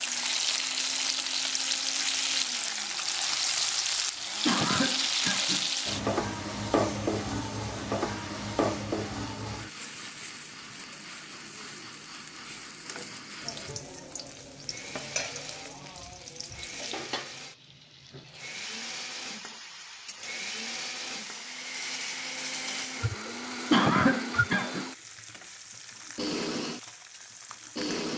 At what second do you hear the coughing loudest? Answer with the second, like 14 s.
24 s.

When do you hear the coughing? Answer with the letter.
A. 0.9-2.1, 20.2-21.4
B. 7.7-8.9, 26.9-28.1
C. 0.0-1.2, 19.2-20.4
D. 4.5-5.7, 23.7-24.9
D.